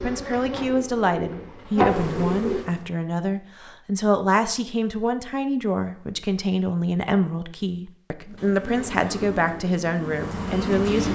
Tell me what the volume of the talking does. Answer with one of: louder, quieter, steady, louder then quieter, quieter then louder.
steady.